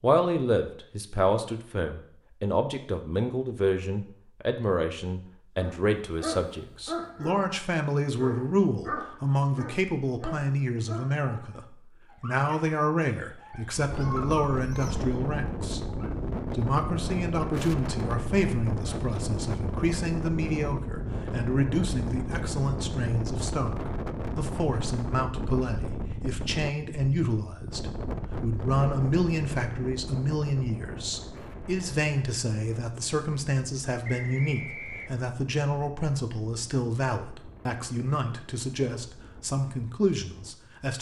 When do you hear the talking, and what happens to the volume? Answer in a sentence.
The talking can be heard from 0.0 to 40.9 s, at a steady volume.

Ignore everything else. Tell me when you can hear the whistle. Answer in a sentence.
The whistle can be heard from 34.0 to 35.2 s.